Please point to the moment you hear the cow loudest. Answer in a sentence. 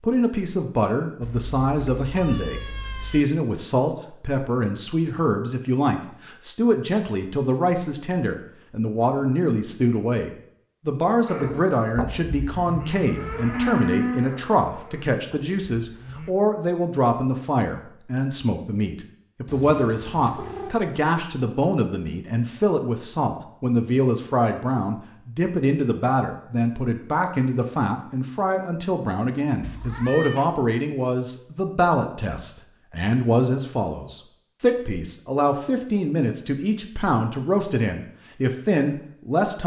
The volume of the cow peaks at 14 seconds.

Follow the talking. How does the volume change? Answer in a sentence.
The loudness of the talking stays about the same.